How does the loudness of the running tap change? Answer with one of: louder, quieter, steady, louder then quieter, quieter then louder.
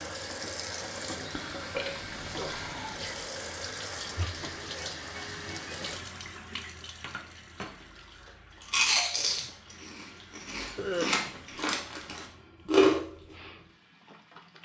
quieter.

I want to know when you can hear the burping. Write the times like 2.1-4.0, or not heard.
1.6-3.0, 10.8-11.2.